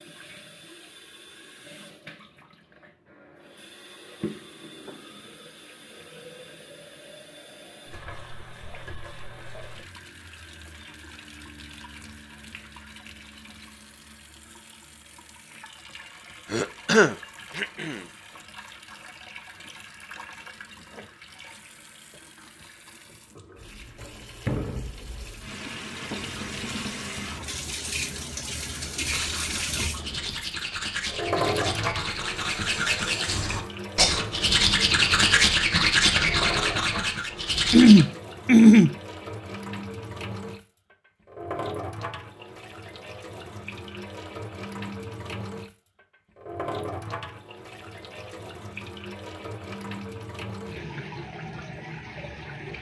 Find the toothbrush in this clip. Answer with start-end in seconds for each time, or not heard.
29.0-38.0.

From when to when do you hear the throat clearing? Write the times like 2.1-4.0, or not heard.
16.5-18.0, 37.7-38.9.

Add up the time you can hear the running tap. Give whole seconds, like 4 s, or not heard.
53 s.